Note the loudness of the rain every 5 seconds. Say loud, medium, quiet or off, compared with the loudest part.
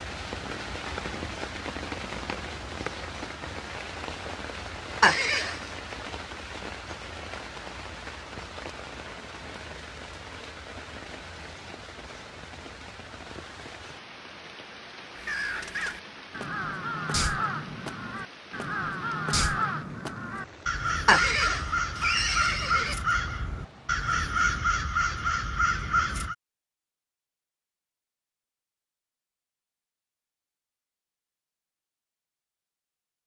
loud, loud, medium, medium, quiet, off, off.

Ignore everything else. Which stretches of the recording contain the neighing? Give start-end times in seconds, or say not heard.
5.0-5.6, 21.1-22.9.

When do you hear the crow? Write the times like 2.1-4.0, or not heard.
15.2-26.4.